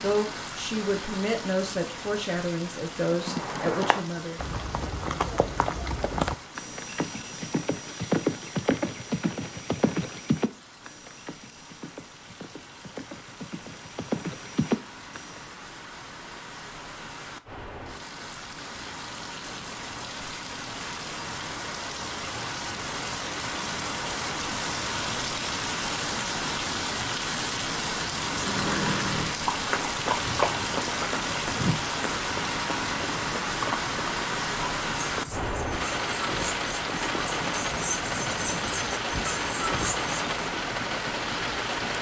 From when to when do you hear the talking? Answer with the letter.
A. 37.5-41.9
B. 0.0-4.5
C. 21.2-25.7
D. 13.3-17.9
B.